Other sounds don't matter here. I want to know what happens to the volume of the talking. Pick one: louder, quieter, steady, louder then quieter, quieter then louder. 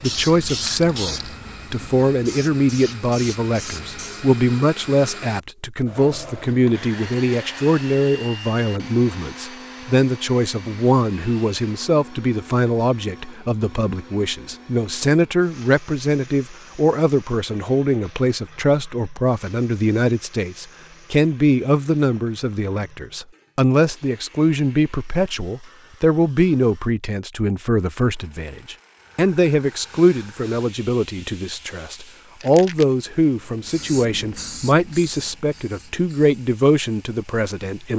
steady.